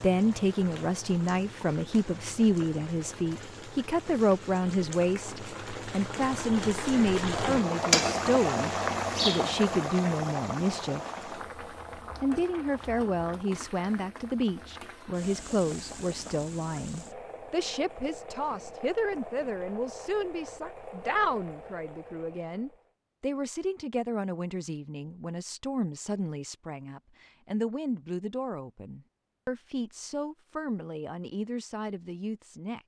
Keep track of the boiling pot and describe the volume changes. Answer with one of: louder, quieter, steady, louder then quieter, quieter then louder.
louder then quieter.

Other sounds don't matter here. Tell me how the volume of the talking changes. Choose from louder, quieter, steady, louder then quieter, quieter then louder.
quieter.